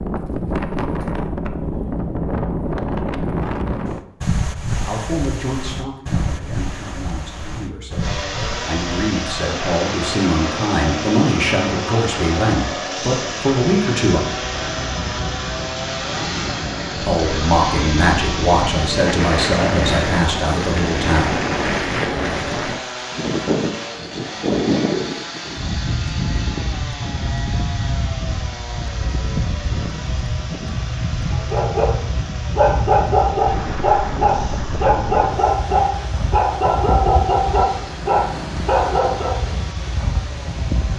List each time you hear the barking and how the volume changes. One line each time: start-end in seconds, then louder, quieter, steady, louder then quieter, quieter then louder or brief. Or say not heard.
31.3-31.9 brief
32.5-39.5 steady.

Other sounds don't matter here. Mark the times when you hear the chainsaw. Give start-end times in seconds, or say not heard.
8.0-40.9.